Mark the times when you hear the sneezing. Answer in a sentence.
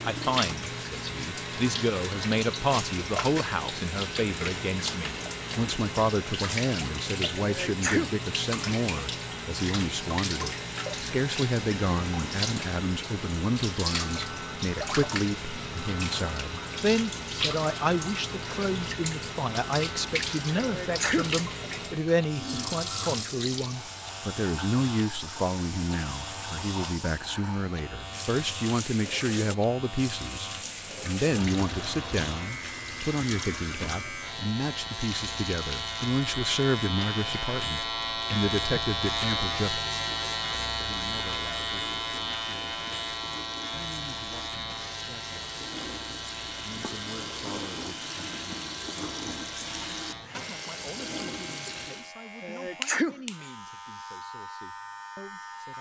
The sneezing can be heard from 7.3 to 8.2 s, from 20.6 to 21.4 s and from 52.4 to 53.5 s.